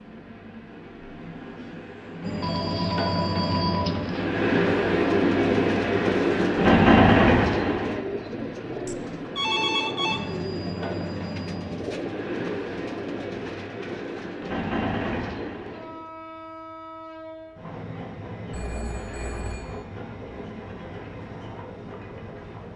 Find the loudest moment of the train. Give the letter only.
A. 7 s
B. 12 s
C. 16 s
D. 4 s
A.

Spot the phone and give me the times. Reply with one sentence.
You can hear the phone from 2.4 to 4.2 s, from 8.8 to 10.2 s and from 18.5 to 19.9 s.